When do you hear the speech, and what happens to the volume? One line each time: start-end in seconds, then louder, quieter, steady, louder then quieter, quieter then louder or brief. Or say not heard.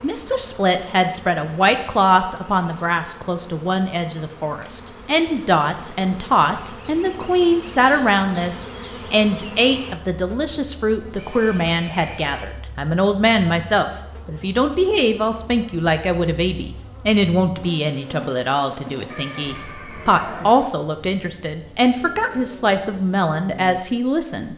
0.0-24.5 steady.